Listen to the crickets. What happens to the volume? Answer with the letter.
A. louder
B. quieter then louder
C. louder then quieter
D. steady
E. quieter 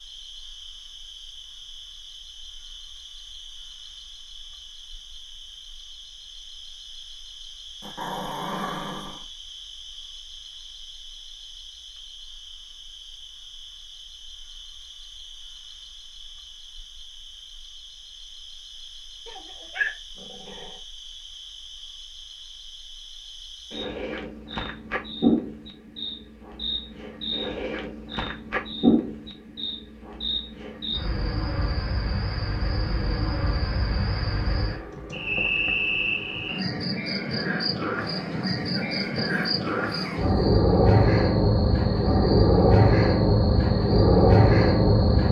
A.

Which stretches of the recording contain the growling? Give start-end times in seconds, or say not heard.
7.8-9.2, 19.2-20.8, 38.0-40.6.